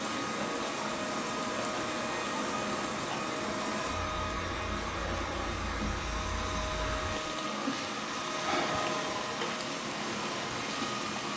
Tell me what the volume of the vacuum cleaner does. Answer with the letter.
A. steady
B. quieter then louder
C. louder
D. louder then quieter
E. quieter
A.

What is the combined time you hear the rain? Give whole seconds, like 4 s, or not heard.
11 s.